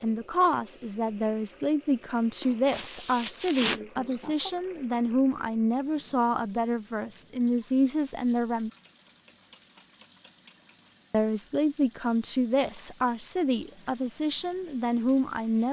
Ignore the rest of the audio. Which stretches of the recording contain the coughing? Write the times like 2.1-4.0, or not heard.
2.4-4.5.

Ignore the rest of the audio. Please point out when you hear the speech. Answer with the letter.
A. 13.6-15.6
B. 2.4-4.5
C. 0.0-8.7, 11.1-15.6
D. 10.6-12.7
C.